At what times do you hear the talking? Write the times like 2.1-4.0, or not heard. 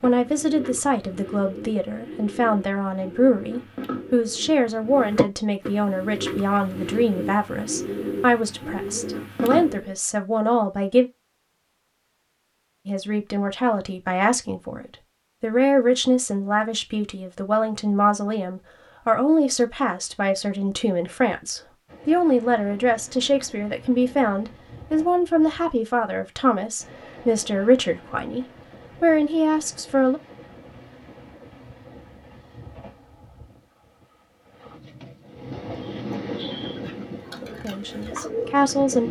0.0-11.1, 12.8-30.2, 37.4-39.0.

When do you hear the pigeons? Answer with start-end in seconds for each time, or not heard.
0.0-9.9, 35.4-39.0.